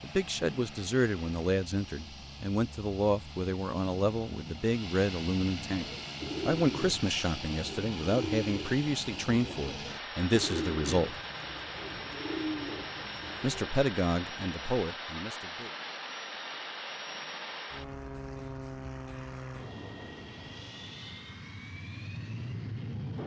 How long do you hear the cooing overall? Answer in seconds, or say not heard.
8 s.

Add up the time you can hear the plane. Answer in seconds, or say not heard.
23 s.